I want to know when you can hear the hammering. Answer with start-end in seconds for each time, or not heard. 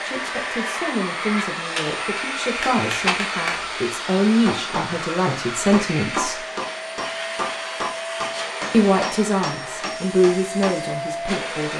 2.5-10.8.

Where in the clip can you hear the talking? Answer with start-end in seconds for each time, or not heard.
0.1-6.5, 8.7-11.7.